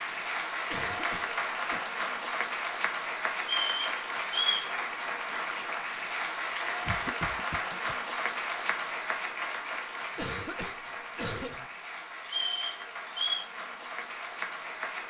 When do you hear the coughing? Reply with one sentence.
You can hear the coughing from 0.7 to 1.8 s, from 6.8 to 8.0 s and from 10.2 to 11.7 s.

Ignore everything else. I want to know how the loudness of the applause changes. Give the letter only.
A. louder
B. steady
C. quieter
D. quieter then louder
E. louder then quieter
C.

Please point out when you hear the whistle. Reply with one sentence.
The whistle can be heard from 3.4 to 4.7 s and from 12.2 to 13.4 s.